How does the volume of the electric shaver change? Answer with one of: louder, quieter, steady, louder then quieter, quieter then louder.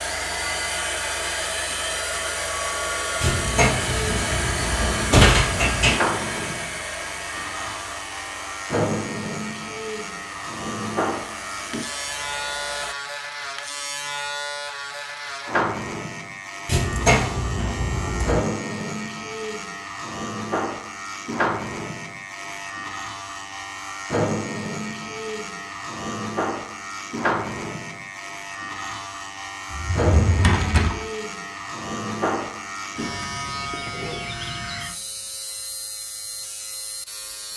steady.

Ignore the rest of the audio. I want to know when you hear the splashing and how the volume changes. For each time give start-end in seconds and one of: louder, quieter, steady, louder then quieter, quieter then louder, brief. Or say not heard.
not heard.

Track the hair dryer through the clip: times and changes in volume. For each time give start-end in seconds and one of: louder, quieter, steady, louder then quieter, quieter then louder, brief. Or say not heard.
0.0-12.9 quieter.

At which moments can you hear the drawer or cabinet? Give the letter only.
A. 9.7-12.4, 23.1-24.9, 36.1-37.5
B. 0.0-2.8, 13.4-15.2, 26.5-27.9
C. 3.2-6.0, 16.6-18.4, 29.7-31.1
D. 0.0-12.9
C.